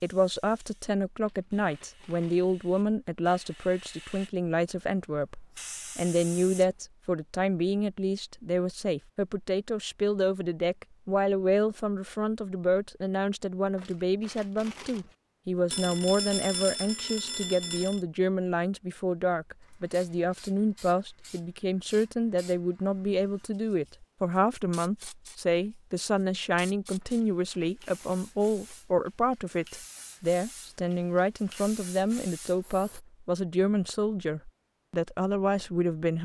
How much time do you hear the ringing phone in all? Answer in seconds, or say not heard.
2 s.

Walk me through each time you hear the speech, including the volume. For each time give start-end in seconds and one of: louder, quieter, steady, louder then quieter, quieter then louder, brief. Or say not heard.
0.0-36.2 steady.